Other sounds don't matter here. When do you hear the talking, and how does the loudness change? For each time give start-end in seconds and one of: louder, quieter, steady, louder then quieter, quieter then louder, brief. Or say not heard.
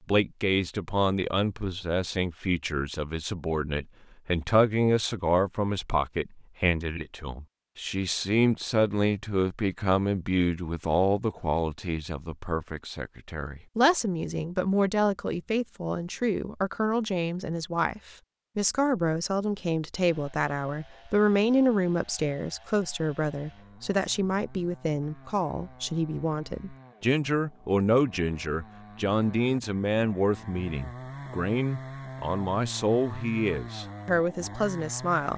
0.1-35.3 steady.